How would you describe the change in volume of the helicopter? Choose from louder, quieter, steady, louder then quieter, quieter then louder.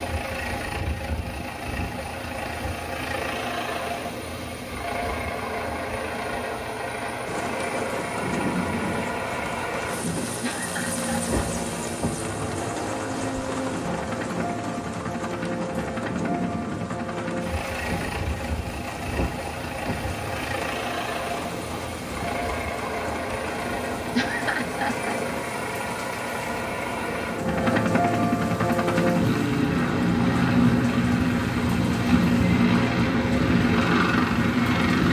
louder.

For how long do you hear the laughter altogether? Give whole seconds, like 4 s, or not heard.
2 s.